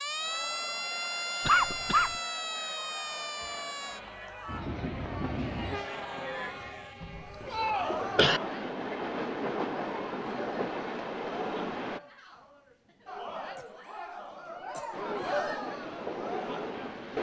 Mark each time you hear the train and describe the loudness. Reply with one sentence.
You can hear the train from 4.5 to 12.0 s, getting quieter then louder; and briefly from 14.9 to 17.1 s.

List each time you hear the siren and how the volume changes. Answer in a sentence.
The siren can be heard from 0.0 to 4.7 s, getting quieter.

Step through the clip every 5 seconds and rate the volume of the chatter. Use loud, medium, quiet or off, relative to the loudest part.
medium, loud, medium, loud.